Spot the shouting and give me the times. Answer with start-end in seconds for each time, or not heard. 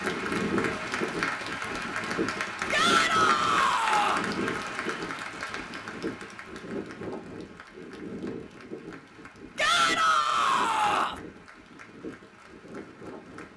2.7-4.2, 9.6-11.2.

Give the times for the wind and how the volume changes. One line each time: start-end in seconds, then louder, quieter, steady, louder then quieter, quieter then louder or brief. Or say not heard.
0.0-13.5 quieter.